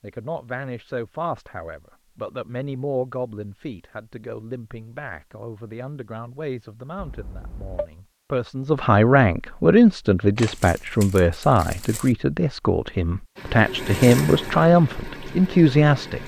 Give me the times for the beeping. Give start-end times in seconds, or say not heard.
7.0-7.9.